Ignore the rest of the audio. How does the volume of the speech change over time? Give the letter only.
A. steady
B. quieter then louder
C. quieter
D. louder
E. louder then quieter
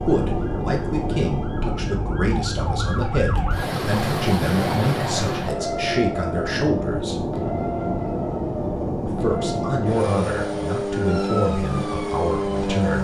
A.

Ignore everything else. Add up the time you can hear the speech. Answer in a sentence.
You can hear the speech for 11 seconds altogether.